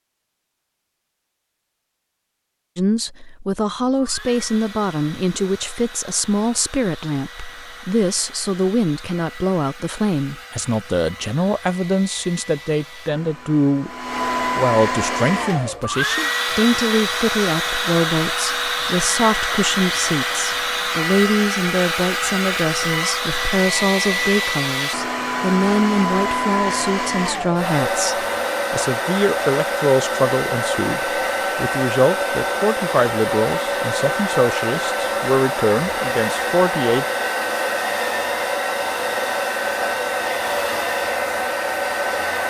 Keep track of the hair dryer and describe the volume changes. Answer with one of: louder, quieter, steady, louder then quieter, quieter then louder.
louder.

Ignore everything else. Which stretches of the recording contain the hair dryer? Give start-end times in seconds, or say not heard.
3.9-42.4.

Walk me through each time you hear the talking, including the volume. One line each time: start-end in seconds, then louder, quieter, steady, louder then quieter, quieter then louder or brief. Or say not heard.
2.8-13.9 steady
14.6-37.0 steady.